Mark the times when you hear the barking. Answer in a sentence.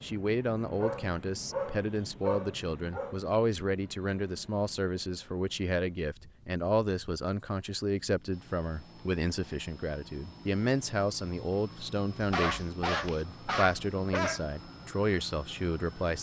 The barking can be heard from 0.8 to 3.2 s and from 12.2 to 14.4 s.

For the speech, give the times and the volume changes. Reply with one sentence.
The speech can be heard from 0.0 to 16.1 s, at a steady volume.